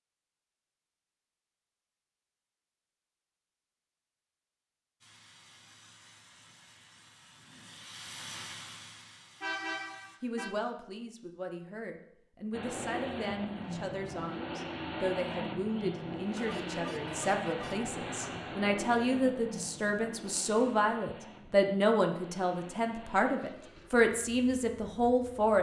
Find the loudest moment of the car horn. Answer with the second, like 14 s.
10 s.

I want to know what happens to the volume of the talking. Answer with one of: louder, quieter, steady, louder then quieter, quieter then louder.
louder.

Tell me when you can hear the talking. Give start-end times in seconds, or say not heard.
10.2-25.5.